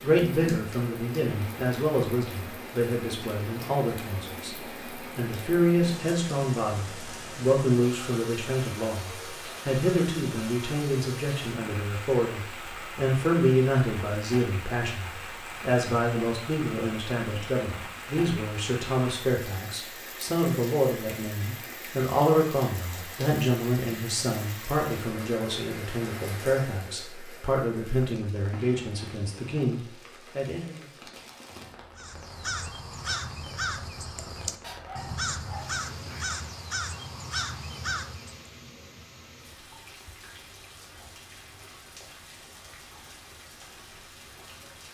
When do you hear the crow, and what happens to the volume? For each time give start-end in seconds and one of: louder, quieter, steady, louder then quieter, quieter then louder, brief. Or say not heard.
31.9-38.5 steady.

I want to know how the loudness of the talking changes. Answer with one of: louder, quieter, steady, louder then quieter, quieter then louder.
steady.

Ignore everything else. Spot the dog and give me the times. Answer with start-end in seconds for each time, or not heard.
34.6-36.4.